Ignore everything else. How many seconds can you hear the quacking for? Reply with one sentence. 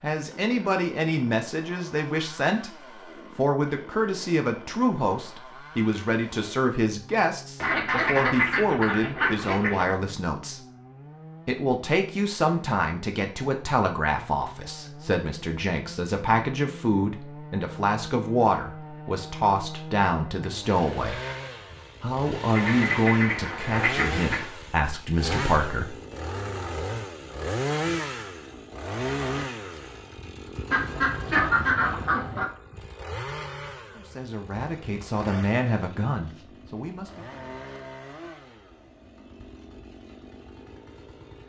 The quacking can be heard for 6 seconds in total.